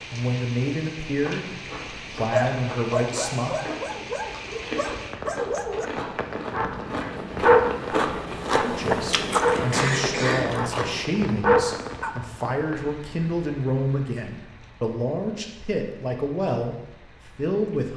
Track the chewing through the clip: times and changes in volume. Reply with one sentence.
You can hear the chewing from 1.1 to 11.2 s, getting louder.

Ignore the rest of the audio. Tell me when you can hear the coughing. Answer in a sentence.
The coughing can be heard from 9.7 to 10.4 s.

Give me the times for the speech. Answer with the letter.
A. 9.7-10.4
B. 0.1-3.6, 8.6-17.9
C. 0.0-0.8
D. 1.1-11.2
B.